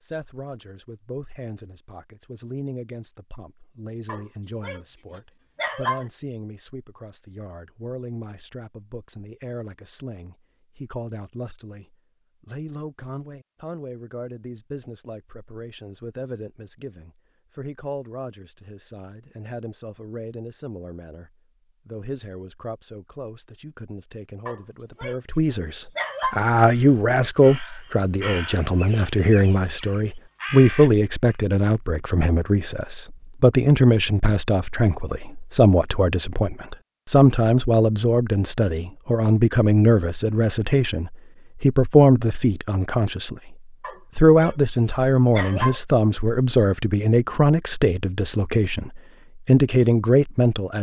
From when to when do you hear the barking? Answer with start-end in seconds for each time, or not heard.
4.0-6.0, 24.4-26.4, 43.8-45.8.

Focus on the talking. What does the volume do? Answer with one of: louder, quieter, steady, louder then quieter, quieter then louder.
louder.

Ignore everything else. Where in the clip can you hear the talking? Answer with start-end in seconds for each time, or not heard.
0.0-43.5, 44.1-50.7.